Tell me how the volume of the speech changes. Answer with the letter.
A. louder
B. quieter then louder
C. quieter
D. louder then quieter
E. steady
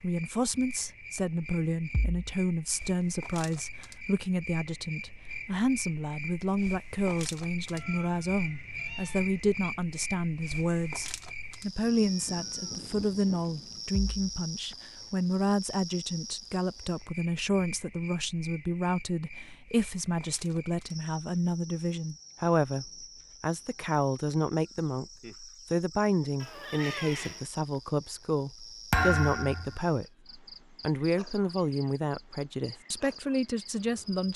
E.